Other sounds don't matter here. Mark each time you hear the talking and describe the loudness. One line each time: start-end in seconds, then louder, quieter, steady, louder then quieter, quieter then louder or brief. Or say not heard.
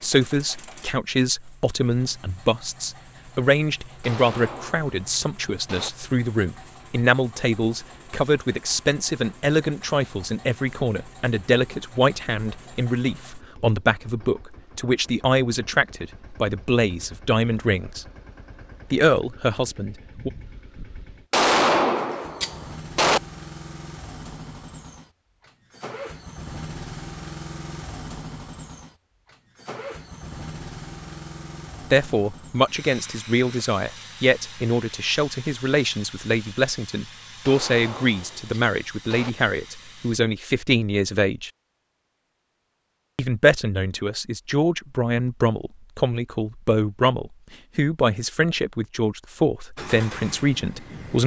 0.0-18.1 steady
18.9-20.3 brief
31.9-41.5 steady
43.1-51.2 steady.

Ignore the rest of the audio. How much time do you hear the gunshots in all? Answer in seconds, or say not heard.
6 s.